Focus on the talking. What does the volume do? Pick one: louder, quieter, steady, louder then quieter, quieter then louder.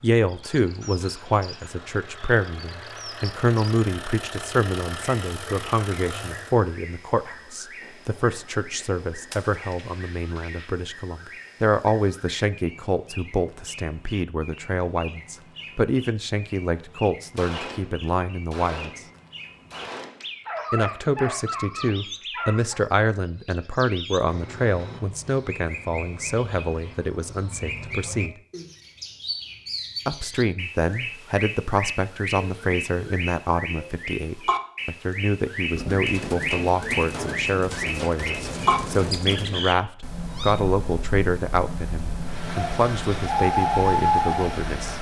steady.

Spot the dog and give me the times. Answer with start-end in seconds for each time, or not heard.
20.4-22.9.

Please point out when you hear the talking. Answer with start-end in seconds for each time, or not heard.
0.0-19.0, 20.7-28.4, 30.1-44.9.